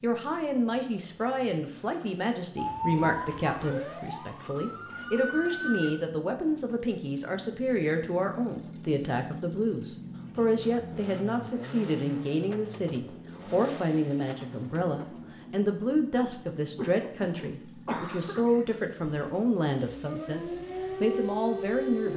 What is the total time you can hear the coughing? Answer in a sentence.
The coughing can be heard for 2 seconds in total.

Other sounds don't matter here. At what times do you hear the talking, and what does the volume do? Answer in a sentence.
You can hear the talking from 0.0 to 22.1 s, at a steady volume.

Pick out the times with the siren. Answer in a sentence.
The siren can be heard from 2.5 to 6.0 s and from 19.1 to 22.1 s.